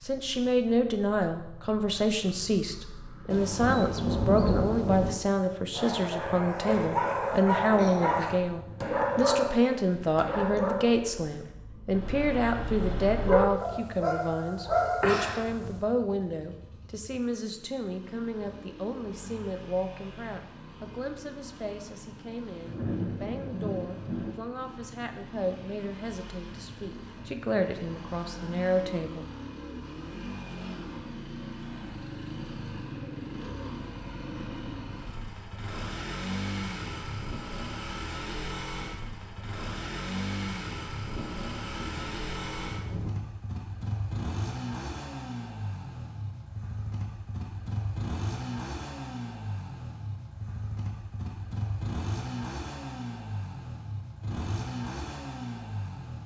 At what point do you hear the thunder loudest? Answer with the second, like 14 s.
4 s.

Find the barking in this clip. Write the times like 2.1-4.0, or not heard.
5.8-15.8.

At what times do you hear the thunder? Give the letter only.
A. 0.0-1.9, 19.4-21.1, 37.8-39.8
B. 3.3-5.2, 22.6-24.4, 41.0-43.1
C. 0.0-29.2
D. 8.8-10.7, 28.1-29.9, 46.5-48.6
B.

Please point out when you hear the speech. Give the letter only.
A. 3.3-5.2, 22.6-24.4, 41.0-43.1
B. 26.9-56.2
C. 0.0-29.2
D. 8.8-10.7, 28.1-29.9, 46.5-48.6
C.